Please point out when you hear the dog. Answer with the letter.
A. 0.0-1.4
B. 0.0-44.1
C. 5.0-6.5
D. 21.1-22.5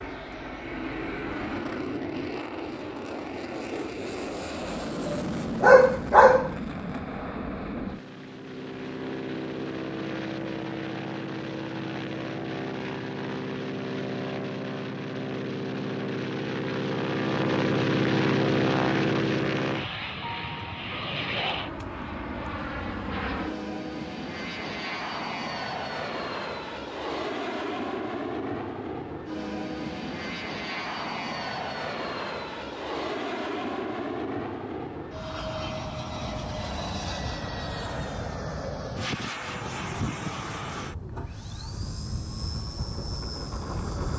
C.